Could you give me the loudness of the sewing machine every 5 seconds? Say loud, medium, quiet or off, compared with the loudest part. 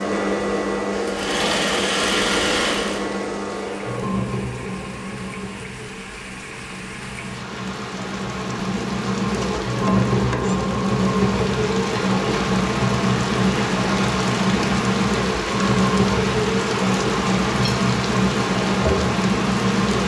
loud, medium, loud, loud.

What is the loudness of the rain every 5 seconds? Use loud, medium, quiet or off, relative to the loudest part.
quiet, medium, loud, loud.